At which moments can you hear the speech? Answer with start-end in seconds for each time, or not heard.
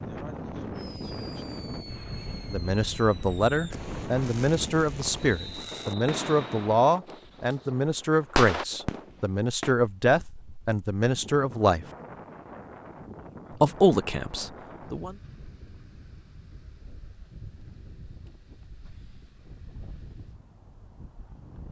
2.5-11.8, 13.6-15.2.